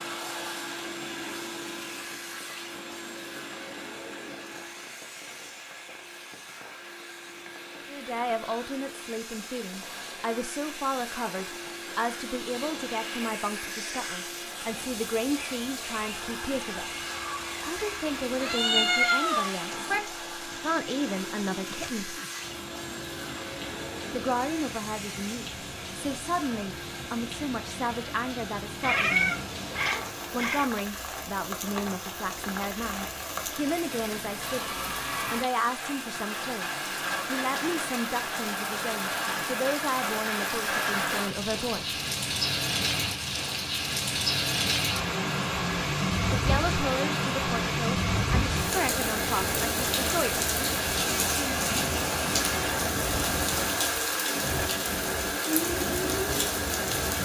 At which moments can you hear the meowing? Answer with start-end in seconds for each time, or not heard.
18.4-20.0, 28.8-30.7.